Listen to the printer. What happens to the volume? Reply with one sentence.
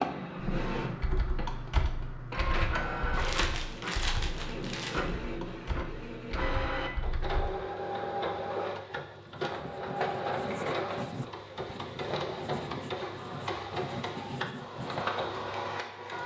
The volume of the printer stays about the same.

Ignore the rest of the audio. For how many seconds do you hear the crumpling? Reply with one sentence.
The crumpling can be heard for 2 seconds in total.